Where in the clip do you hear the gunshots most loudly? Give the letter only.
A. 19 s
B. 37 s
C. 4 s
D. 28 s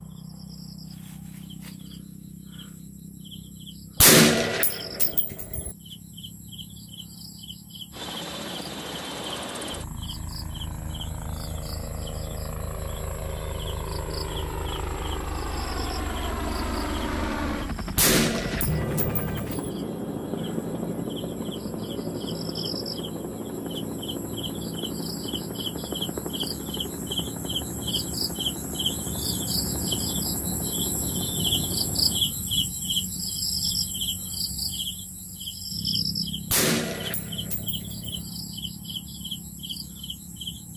C.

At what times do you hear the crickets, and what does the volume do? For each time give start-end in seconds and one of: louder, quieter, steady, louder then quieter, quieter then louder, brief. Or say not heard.
0.0-40.7 louder.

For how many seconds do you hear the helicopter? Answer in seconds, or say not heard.
24 s.